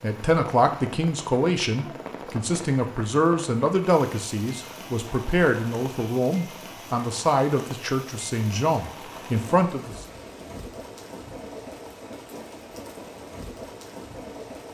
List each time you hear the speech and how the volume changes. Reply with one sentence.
The speech can be heard from 0.0 to 10.1 s, at a steady volume.